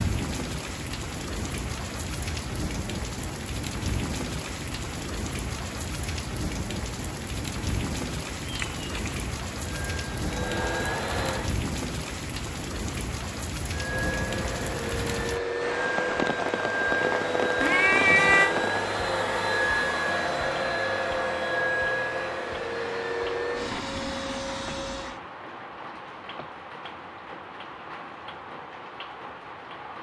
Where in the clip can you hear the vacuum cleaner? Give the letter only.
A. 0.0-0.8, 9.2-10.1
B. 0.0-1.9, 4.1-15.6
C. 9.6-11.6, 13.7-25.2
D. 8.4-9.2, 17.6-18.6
C.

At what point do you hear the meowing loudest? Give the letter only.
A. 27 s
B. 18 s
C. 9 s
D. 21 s
B.